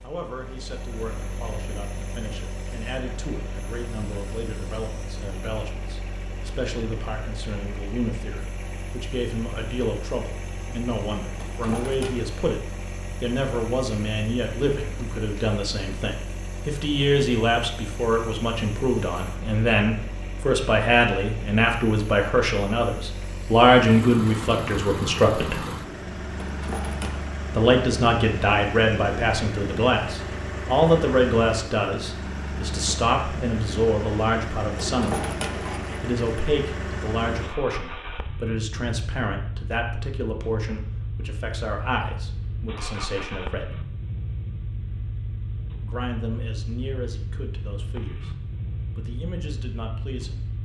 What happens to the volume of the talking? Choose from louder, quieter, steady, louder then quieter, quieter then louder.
louder then quieter.